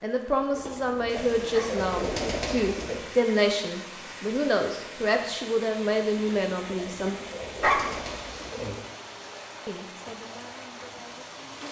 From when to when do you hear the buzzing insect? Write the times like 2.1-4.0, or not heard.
not heard.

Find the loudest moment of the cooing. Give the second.
2 s.